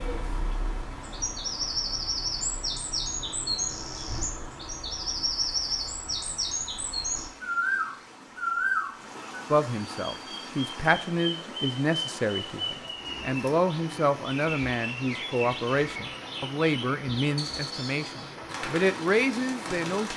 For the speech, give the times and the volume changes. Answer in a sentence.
You can hear the speech from 9.5 to 20.1 s, at a steady volume.